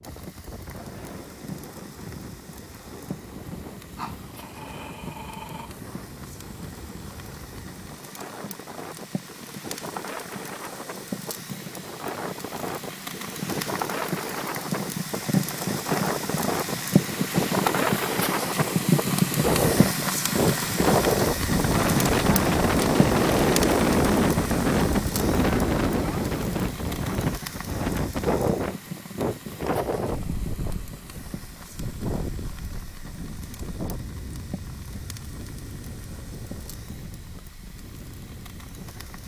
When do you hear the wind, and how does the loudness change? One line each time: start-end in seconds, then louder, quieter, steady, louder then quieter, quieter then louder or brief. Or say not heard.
0.0-39.2 louder then quieter.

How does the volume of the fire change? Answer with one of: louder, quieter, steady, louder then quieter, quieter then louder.
louder then quieter.